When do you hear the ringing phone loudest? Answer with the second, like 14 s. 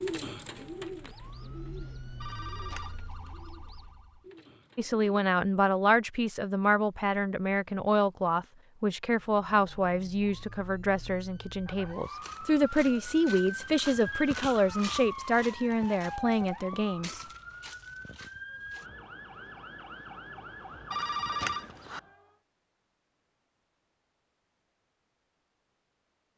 21 s.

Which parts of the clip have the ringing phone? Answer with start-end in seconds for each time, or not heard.
2.2-3.0, 20.9-22.0.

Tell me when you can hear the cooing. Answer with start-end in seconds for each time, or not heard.
0.0-5.3.